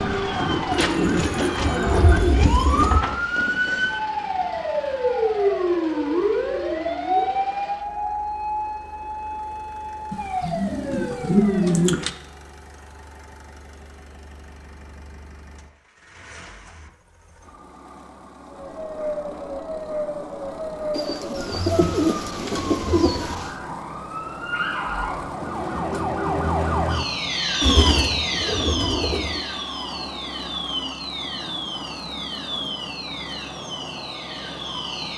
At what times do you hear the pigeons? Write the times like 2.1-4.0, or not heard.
0.7-3.0, 10.1-12.1, 20.9-23.5, 27.6-29.4.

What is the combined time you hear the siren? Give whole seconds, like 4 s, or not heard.
29 s.